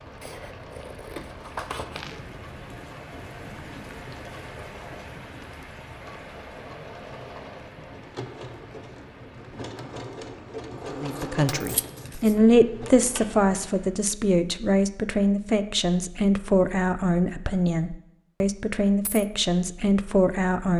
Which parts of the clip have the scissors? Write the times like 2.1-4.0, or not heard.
0.2-2.1, 10.8-12.3.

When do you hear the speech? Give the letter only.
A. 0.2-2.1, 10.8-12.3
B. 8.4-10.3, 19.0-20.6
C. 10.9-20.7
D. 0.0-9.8
C.